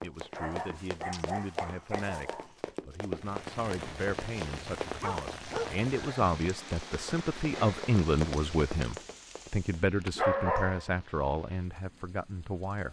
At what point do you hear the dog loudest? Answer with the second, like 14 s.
10 s.